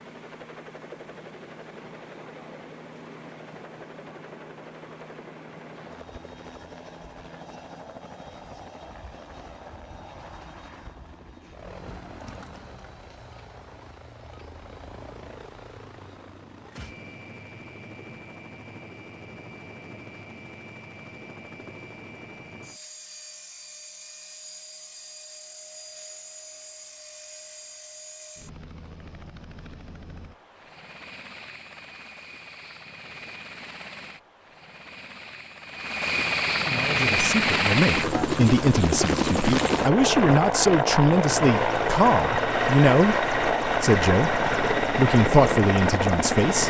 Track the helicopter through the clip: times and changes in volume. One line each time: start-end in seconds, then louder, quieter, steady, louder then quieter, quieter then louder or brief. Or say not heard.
0.0-46.6 louder.